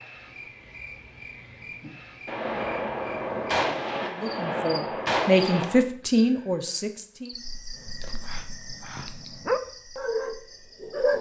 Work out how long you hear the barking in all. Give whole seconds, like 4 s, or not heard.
3 s.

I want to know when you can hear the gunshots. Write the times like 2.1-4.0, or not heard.
2.2-5.8.